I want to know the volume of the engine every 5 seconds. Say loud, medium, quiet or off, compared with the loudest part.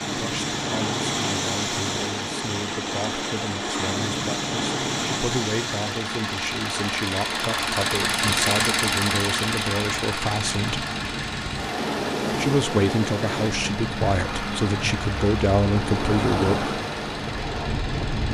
medium, loud, medium, medium.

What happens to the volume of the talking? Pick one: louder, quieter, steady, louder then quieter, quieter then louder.
louder.